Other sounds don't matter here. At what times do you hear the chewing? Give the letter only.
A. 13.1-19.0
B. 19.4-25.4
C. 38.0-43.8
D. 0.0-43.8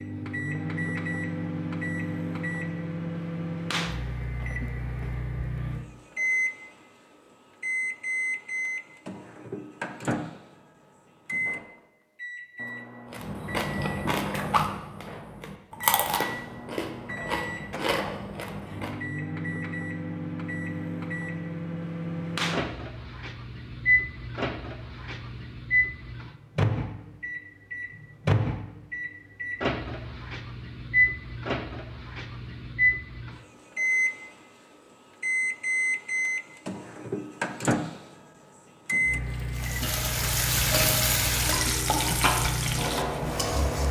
A.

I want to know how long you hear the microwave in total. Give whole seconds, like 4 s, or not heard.
44 s.